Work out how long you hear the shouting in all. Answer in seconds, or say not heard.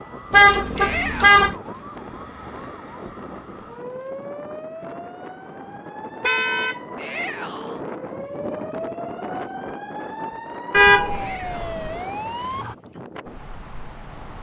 2 s.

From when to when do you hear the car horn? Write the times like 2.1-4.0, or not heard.
0.3-1.6, 6.2-6.8, 10.7-11.9.